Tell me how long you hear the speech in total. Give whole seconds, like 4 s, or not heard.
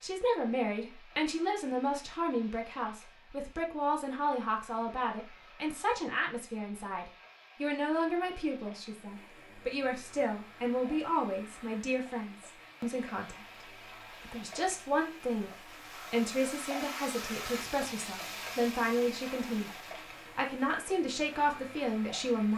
21 s.